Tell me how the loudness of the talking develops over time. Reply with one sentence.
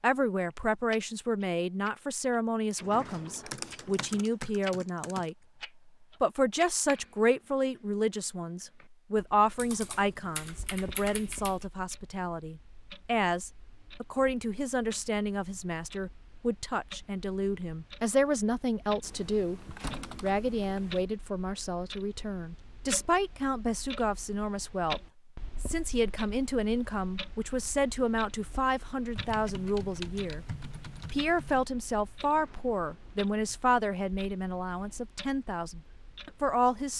The loudness of the talking stays about the same.